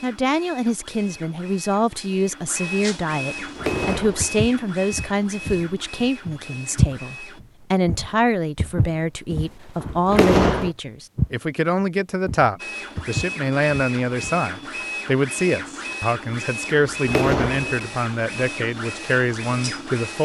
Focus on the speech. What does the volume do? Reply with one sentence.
The volume of the speech stays about the same.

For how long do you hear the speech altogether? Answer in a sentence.
You can hear the speech for 20 seconds altogether.